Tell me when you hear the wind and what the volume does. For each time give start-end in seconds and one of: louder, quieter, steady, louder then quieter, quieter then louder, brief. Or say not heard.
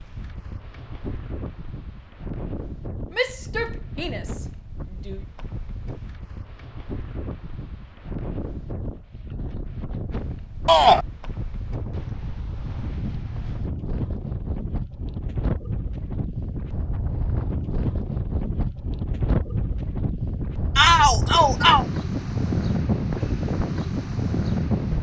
0.0-24.9 louder.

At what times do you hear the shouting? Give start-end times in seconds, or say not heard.
3.1-5.2, 10.7-11.1, 20.8-21.9.